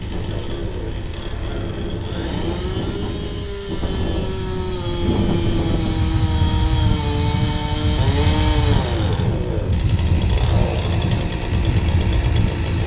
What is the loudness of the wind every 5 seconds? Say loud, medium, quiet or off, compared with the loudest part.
medium, loud, loud.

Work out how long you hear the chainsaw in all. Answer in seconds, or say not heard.
13 s.